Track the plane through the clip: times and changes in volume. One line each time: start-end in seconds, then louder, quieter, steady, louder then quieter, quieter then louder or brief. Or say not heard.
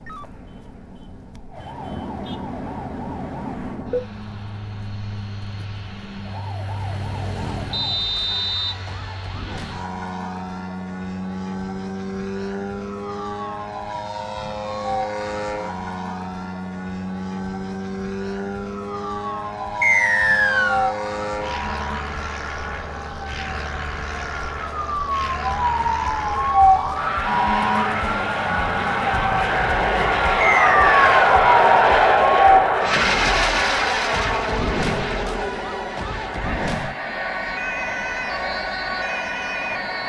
0.0-40.0 louder.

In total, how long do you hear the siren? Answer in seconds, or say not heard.
40 s.